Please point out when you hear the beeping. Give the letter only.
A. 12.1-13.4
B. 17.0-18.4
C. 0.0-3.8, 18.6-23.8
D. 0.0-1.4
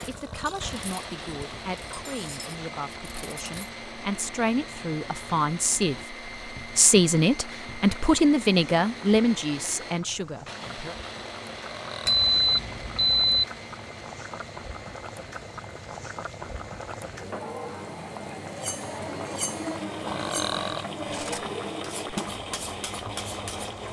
A.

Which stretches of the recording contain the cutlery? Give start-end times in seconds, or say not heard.
0.0-3.8, 18.6-23.8.